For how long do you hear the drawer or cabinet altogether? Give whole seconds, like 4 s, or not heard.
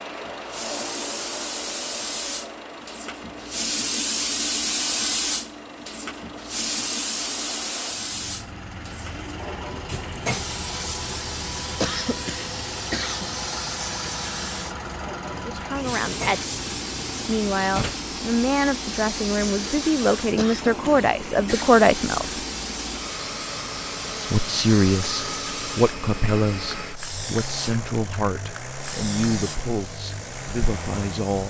3 s.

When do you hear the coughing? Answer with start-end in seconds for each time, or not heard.
11.8-13.2, 20.4-21.8.